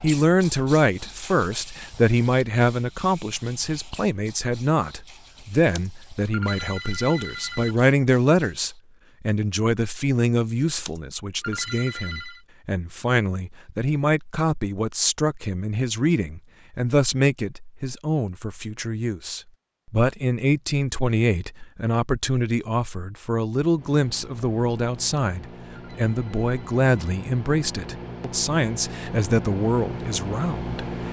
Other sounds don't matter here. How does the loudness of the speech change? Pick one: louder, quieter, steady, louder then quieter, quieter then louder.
steady.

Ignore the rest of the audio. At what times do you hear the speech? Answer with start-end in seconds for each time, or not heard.
0.0-30.8.